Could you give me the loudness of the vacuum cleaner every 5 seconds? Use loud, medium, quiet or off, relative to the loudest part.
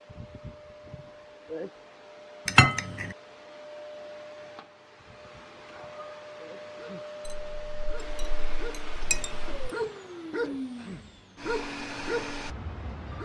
medium, loud, loud.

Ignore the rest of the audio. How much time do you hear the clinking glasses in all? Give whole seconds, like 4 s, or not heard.
3 s.